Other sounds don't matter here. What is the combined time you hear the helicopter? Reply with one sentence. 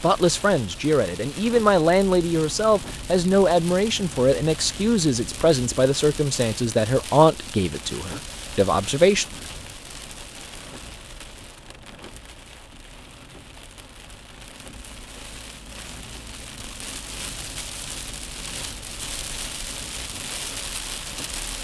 The helicopter can't be heard in this clip.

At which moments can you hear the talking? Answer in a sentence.
You can hear the talking from 0.0 to 9.2 s.